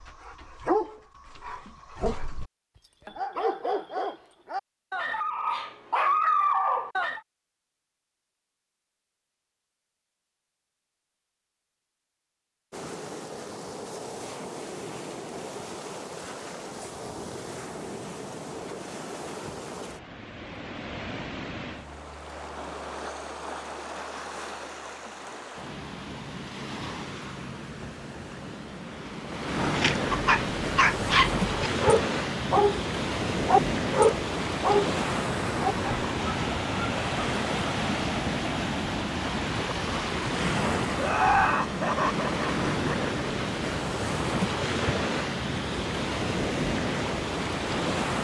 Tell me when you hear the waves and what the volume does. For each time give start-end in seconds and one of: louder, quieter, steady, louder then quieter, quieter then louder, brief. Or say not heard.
12.7-48.2 louder.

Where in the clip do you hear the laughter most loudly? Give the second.
41 s.